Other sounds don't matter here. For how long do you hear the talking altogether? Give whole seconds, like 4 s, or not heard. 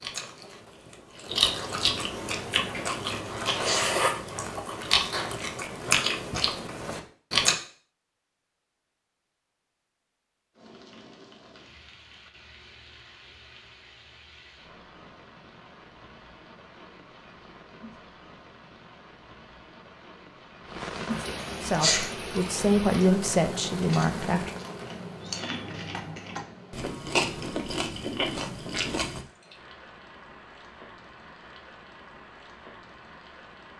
3 s.